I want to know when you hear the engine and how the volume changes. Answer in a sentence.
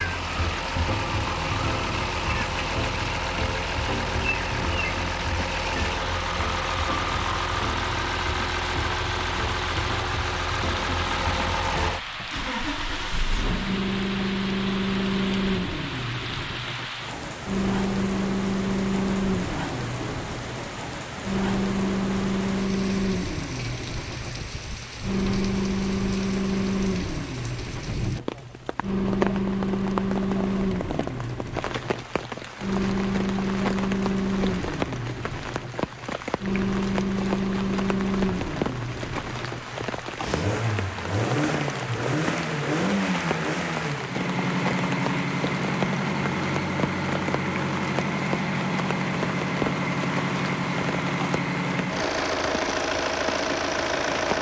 You can hear the engine from 0.0 to 54.3 s, at a steady volume.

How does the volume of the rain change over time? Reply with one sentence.
The volume of the rain stays about the same.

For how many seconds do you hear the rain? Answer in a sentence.
The rain can be heard for 54 seconds in total.